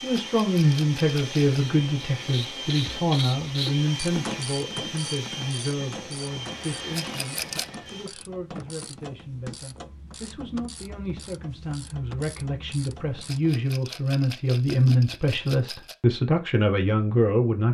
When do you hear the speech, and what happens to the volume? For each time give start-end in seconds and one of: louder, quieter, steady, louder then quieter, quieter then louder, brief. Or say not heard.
0.0-17.6 quieter then louder.